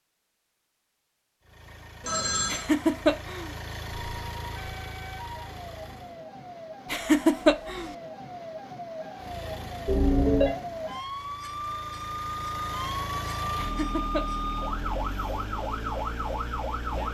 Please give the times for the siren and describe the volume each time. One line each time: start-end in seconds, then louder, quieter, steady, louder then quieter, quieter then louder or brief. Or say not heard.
3.9-17.0 louder.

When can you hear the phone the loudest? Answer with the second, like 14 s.
10 s.